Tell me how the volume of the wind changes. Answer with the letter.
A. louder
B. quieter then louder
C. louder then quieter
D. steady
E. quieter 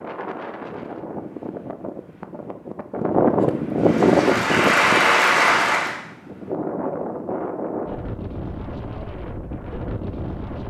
C.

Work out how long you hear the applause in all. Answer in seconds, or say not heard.
2 s.